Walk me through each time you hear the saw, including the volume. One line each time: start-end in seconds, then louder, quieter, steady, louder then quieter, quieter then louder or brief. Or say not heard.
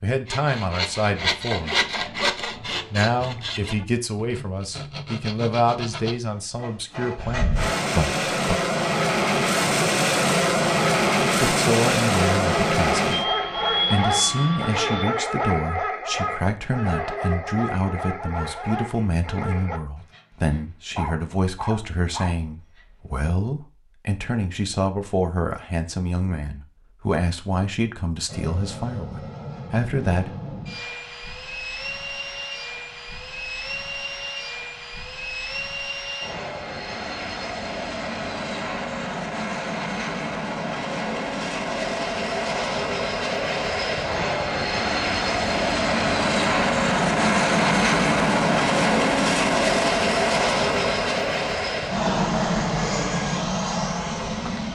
0.2-7.8 quieter.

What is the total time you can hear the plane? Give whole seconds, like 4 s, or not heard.
34 s.